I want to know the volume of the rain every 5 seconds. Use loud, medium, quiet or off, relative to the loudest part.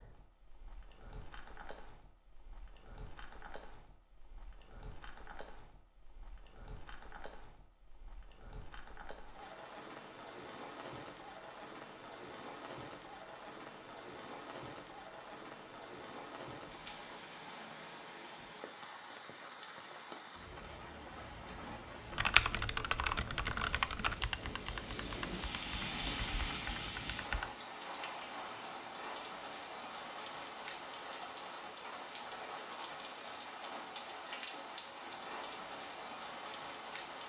quiet, quiet, medium, medium, medium, loud, loud, loud.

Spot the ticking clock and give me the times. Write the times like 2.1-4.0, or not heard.
not heard.